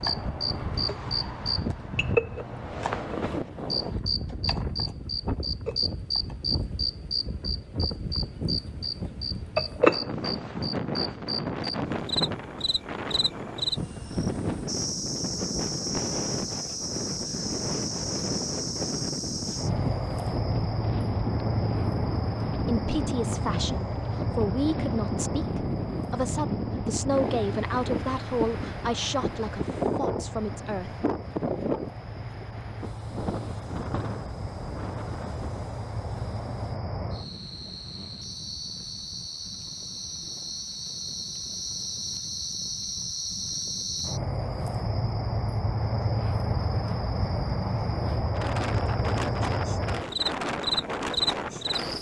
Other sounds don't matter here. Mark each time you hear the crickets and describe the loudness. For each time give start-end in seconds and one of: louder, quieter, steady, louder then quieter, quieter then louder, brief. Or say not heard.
0.0-51.9 quieter then louder.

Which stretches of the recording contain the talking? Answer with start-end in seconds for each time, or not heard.
22.6-31.1.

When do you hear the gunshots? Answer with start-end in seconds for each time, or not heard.
not heard.